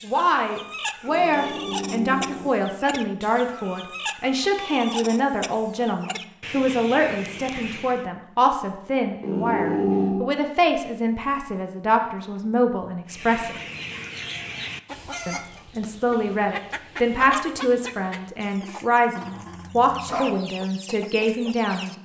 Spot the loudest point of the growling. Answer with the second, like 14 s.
10 s.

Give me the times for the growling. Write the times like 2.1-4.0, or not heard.
1.1-2.7, 9.2-10.2, 19.2-20.4.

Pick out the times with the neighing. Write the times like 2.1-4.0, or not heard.
not heard.